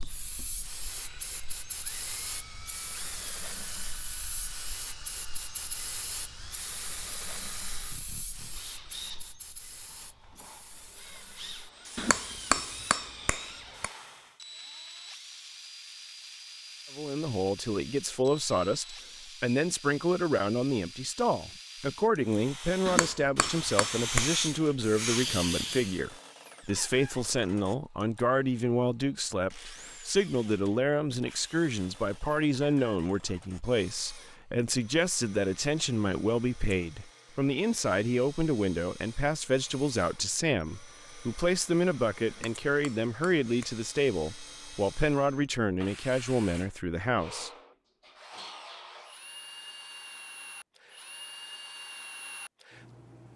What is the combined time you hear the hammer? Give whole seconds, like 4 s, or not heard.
5 s.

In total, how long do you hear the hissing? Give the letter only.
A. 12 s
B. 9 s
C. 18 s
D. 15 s
C.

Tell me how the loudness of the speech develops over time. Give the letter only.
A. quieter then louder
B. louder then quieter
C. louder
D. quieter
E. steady
E.